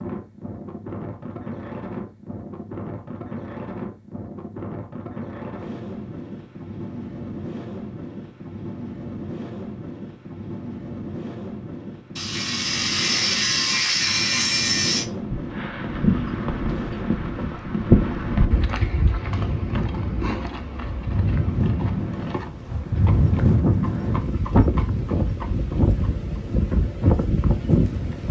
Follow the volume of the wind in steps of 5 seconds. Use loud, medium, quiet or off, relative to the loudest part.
medium, medium, medium, medium, loud, loud.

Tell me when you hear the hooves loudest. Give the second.
18 s.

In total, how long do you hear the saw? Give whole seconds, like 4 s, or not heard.
3 s.